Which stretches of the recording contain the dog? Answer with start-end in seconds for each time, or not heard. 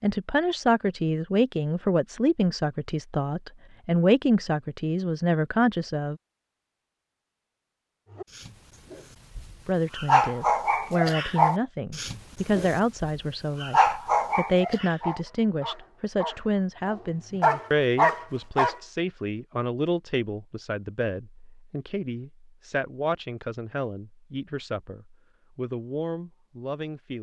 8.2-18.8.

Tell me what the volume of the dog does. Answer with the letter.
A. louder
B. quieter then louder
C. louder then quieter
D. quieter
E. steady
B.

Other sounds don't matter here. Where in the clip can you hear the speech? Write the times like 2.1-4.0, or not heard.
0.0-6.2, 9.7-27.1.